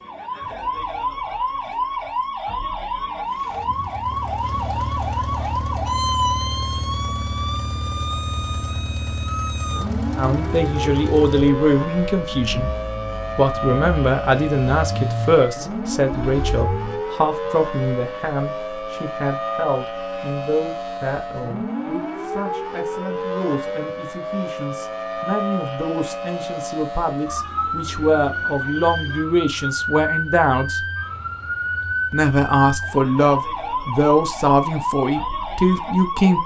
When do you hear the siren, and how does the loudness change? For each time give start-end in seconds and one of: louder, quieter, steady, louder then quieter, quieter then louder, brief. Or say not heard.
0.0-36.4 steady.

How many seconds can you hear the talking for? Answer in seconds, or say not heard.
24 s.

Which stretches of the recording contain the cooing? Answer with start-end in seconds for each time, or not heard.
not heard.